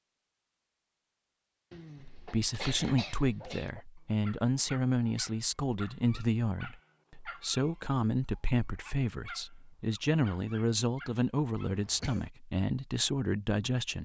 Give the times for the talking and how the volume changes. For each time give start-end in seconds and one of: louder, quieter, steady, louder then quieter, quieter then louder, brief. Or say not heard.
2.0-14.0 steady.